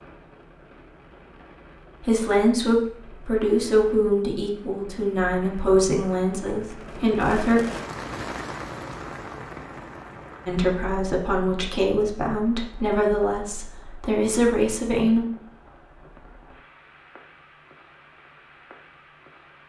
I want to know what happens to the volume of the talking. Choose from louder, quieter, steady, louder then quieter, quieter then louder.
steady.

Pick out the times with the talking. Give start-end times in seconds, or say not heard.
2.0-7.6, 10.4-15.2.